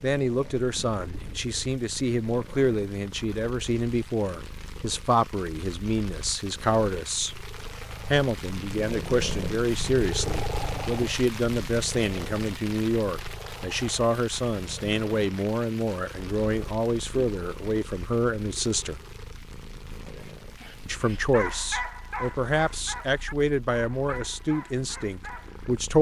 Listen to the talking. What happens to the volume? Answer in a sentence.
The loudness of the talking stays about the same.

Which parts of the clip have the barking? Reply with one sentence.
You can hear the barking from 20.1 to 25.6 s.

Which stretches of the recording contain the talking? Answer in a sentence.
You can hear the talking from 0.0 to 7.3 s, from 8.1 to 19.0 s and from 20.9 to 25.9 s.